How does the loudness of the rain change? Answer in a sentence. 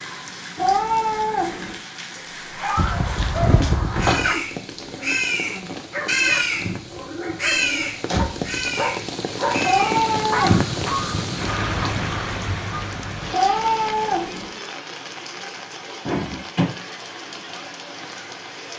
The loudness of the rain goes up, then down.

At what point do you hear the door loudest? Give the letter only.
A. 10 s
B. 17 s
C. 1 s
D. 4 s
D.